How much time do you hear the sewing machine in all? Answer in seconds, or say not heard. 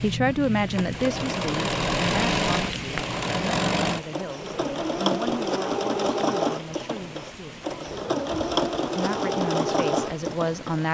11 s.